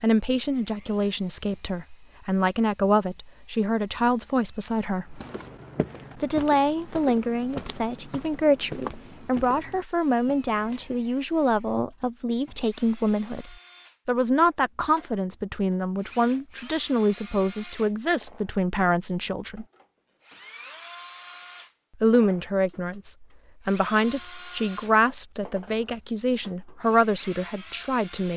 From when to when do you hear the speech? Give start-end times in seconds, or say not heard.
0.0-5.2, 6.2-19.6, 22.0-28.3.